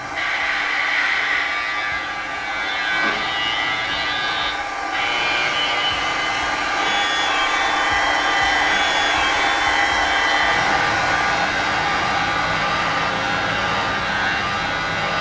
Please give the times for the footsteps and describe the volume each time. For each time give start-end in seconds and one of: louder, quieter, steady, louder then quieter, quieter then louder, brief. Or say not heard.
not heard.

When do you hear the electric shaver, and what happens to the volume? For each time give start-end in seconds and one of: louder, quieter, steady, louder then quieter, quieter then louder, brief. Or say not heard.
0.0-15.1 steady.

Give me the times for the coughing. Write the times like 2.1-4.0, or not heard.
not heard.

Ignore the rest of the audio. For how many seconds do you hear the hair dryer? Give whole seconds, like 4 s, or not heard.
15 s.